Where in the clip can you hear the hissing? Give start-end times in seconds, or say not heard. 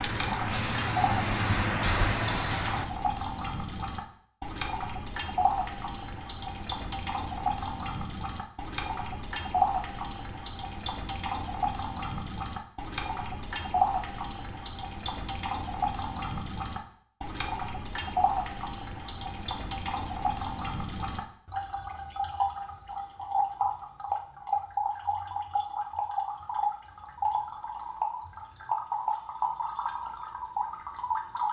0.0-2.9.